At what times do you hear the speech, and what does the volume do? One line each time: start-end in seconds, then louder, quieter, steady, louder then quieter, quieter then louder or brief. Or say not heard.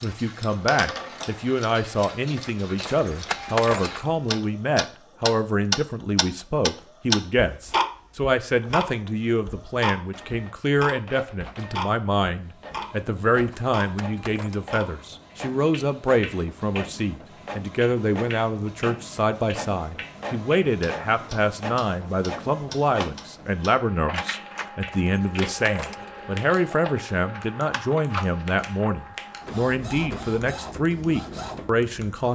0.0-32.2 steady.